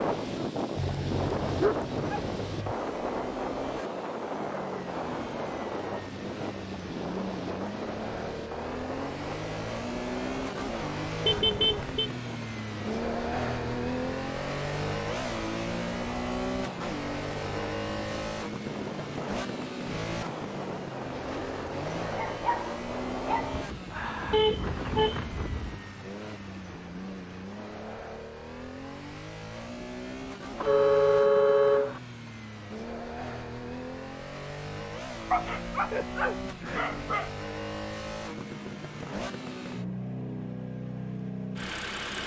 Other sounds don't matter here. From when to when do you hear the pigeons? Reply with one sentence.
You can't hear the pigeons here.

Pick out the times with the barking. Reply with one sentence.
You can hear the barking from 0.8 to 2.8 s, from 22.0 to 24.4 s and from 35.3 to 37.3 s.